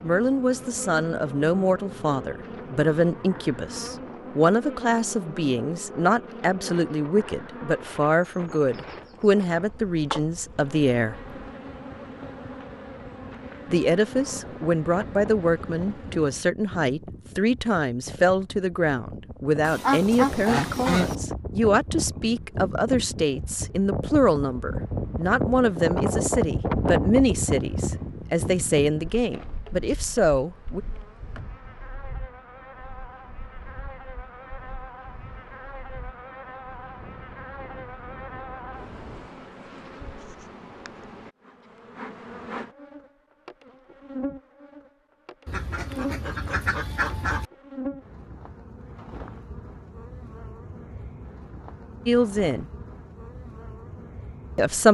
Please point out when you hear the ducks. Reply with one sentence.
The ducks can be heard from 19.6 to 21.1 s and from 45.5 to 47.5 s.